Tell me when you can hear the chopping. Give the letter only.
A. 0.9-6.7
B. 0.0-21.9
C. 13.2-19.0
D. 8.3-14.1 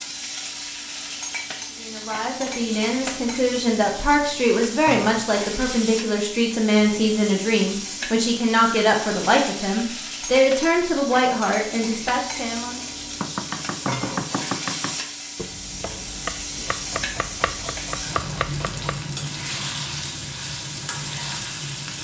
C.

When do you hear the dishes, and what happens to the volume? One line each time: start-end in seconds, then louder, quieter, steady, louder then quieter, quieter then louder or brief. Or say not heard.
not heard.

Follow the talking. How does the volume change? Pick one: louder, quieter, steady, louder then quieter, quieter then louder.
steady.